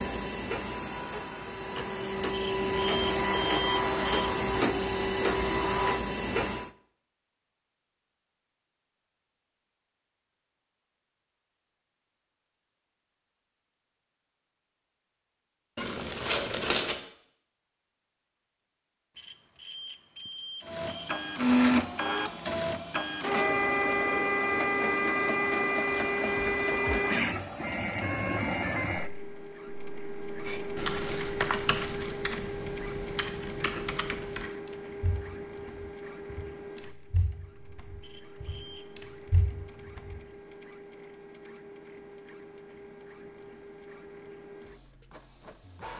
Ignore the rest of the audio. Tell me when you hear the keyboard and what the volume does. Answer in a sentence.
You can hear the keyboard from 30.4 to 40.2 s, getting quieter then louder.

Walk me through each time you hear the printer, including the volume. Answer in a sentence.
You can hear the printer from 0.0 to 6.7 s, getting louder; and from 20.6 to 45.9 s, getting quieter.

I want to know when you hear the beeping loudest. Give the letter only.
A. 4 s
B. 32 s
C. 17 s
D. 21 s
A.